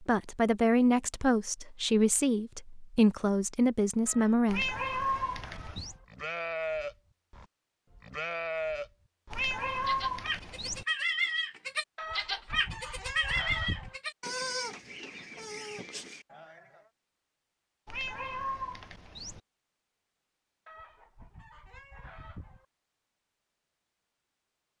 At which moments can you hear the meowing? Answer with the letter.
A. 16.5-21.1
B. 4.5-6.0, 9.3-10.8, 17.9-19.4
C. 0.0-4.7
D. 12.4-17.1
B.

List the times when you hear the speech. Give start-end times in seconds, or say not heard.
0.0-4.7.